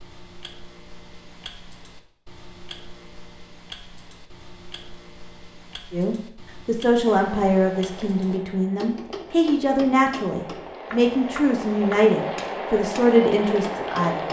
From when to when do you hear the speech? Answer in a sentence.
You can hear the speech from 5.9 to 14.2 s.